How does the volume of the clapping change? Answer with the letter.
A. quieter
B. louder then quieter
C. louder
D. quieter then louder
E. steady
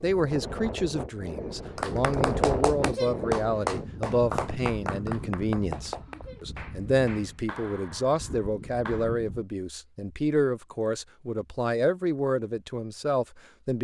A.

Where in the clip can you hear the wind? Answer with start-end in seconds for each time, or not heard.
0.0-9.4.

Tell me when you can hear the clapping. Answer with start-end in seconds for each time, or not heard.
1.8-9.2.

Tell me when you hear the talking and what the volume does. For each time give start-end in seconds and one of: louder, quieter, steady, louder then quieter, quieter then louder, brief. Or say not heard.
0.0-13.7 steady.